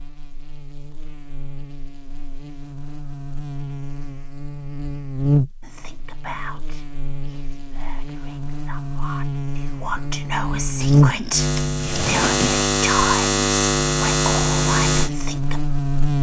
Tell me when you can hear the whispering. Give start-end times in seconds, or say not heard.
5.6-15.6.